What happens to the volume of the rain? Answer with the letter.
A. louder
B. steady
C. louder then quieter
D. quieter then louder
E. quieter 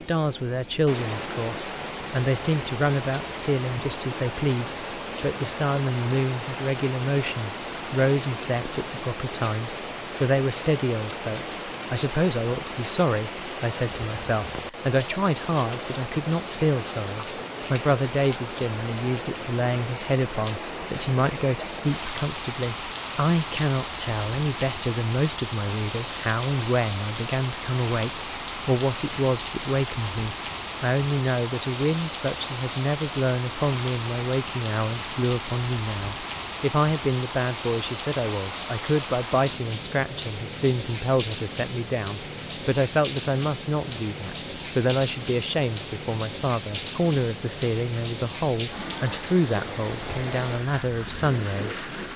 B.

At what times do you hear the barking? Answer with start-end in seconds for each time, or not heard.
not heard.